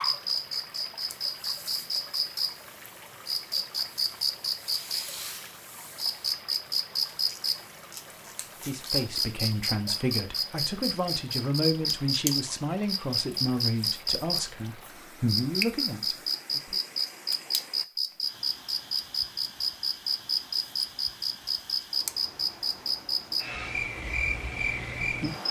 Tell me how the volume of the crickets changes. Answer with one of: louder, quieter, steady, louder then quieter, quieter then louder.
steady.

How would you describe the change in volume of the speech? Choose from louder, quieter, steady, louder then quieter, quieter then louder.
steady.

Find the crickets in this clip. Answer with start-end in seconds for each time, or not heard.
0.0-25.4.